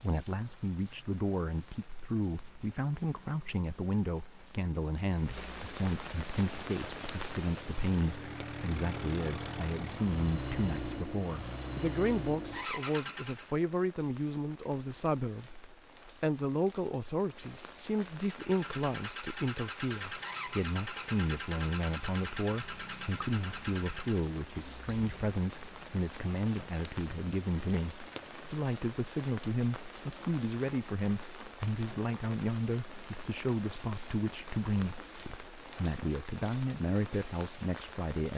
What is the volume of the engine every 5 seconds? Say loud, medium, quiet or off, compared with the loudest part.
off, loud, loud, loud, loud, off, off, off.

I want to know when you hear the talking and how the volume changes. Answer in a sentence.
The talking can be heard from 0.0 to 38.3 s, at a steady volume.